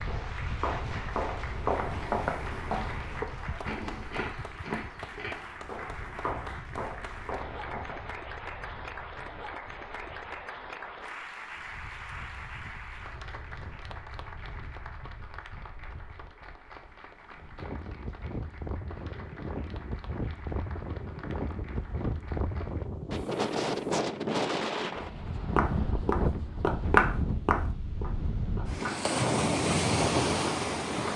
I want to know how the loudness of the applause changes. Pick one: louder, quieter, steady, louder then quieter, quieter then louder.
quieter.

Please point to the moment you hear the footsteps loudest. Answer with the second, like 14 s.
27 s.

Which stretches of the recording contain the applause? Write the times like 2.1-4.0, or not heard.
0.0-22.9.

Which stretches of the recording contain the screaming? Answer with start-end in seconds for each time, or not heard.
not heard.